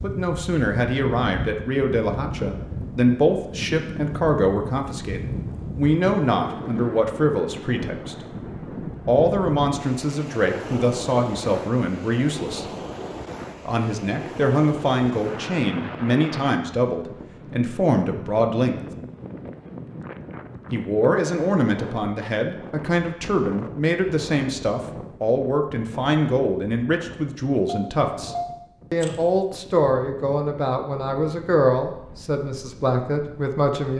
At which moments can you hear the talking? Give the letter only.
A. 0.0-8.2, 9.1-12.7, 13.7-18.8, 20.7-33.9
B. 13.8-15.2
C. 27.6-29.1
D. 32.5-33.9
A.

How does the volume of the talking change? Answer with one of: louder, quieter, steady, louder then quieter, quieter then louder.
steady.